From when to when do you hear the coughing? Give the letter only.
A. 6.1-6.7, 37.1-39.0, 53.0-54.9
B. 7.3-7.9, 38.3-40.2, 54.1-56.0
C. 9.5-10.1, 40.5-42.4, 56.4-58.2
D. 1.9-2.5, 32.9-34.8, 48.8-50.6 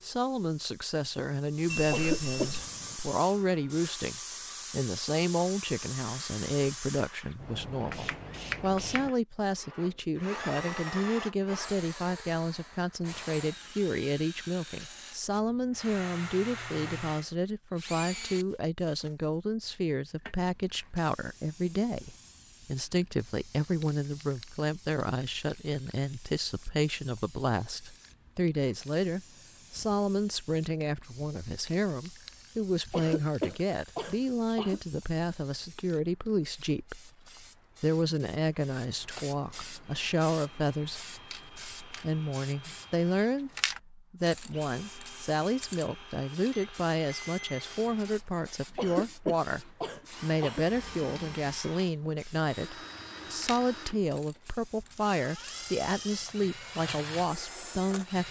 D.